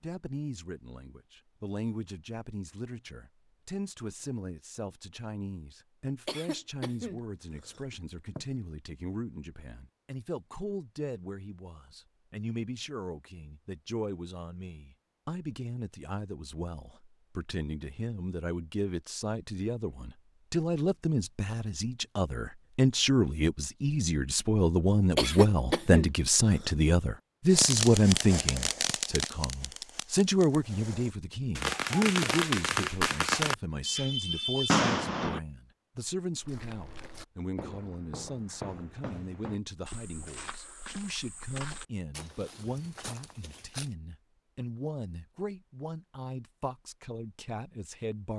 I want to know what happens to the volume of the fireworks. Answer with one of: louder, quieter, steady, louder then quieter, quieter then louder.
quieter then louder.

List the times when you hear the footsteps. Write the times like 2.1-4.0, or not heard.
36.4-44.0.